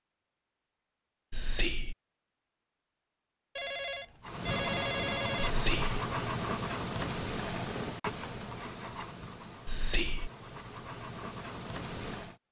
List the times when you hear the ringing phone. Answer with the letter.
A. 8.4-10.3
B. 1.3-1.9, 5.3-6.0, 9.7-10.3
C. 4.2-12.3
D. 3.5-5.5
D.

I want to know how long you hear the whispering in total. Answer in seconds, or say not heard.
2 s.